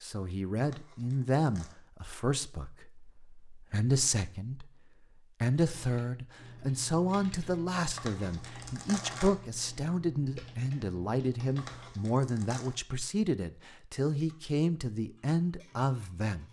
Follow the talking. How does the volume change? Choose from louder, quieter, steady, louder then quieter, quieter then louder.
steady.